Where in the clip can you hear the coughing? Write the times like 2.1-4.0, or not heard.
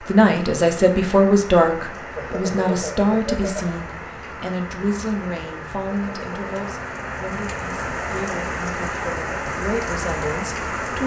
2.1-3.8, 5.9-6.3.